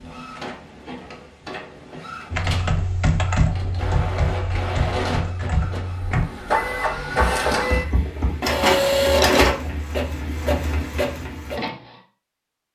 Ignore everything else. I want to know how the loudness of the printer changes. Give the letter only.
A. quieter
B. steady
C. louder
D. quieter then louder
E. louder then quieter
C.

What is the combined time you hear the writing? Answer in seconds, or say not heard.
not heard.